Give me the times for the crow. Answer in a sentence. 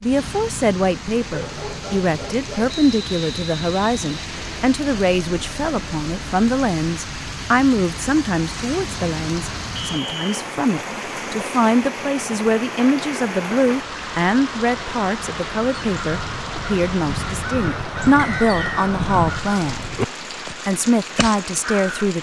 The crow can be heard from 15.5 to 22.1 s.